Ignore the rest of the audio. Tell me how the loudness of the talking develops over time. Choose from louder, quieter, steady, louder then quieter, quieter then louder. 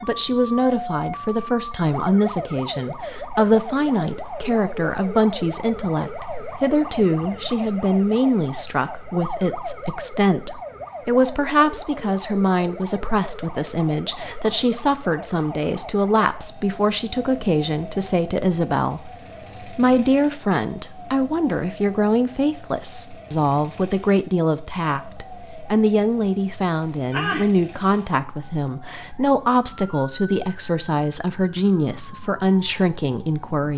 steady.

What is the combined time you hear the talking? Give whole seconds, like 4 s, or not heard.
34 s.